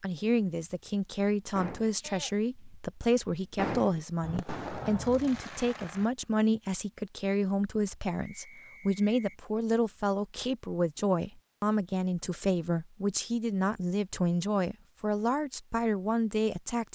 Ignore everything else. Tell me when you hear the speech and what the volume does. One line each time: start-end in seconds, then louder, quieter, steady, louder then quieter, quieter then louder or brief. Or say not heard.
0.0-16.9 steady.